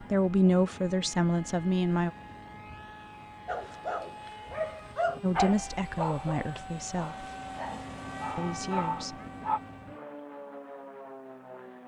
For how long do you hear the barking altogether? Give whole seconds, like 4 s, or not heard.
6 s.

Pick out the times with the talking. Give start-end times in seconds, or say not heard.
0.0-2.1, 5.2-7.2, 8.3-9.2.